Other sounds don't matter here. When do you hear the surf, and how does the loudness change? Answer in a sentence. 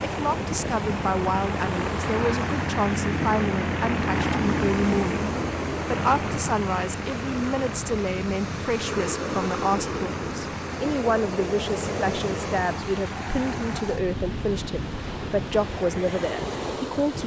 The surf can be heard from 0.0 to 17.2 s, at a steady volume.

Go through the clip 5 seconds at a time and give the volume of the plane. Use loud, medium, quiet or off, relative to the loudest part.
loud, medium, medium, off.